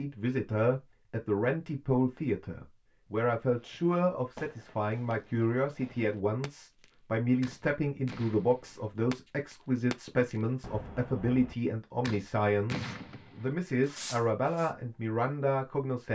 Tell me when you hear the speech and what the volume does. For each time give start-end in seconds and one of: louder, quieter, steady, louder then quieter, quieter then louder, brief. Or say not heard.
0.0-16.1 steady.